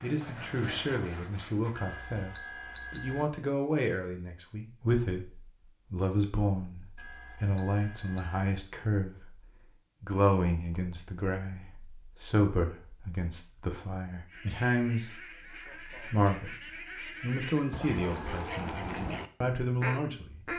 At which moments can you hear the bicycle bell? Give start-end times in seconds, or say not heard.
1.8-3.2, 7.0-8.6, 17.6-18.4.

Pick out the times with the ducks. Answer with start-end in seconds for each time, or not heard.
0.0-1.9, 14.2-20.5.